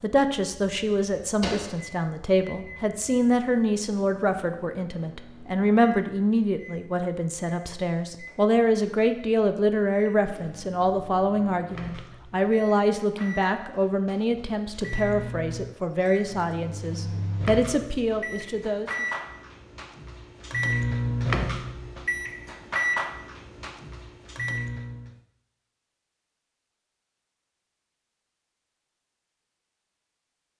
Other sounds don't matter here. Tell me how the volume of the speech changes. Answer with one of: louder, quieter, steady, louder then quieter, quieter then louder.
steady.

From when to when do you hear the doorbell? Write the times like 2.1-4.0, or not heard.
not heard.